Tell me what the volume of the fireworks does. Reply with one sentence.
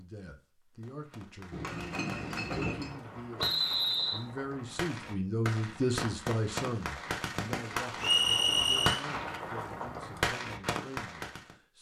The volume of the fireworks goes up.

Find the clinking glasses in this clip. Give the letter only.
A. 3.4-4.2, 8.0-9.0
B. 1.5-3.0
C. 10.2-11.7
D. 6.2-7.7
B.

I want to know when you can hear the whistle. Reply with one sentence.
You can hear the whistle from 3.4 to 4.2 s and from 8.0 to 9.0 s.